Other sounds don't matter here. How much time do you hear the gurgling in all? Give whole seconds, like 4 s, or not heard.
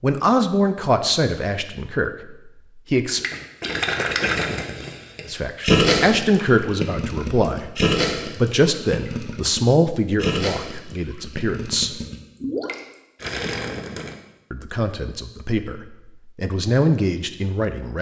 11 s.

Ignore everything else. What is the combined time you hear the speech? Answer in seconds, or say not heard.
13 s.